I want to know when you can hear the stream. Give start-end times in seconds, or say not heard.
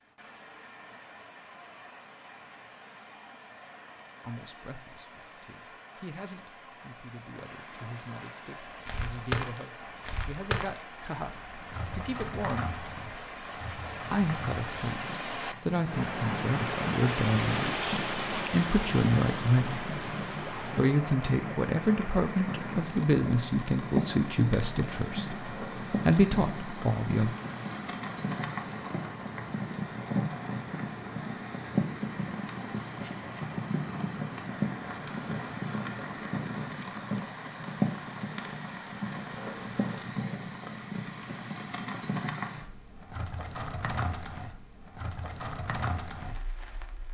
0.0-39.9.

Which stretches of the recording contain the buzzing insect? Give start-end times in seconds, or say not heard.
not heard.